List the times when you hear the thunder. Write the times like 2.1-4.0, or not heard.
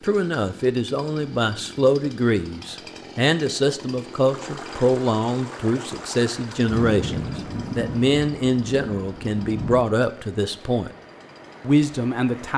6.7-9.8.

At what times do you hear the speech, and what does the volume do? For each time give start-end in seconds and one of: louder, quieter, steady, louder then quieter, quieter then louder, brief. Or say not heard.
0.0-10.9 steady
11.6-12.5 brief.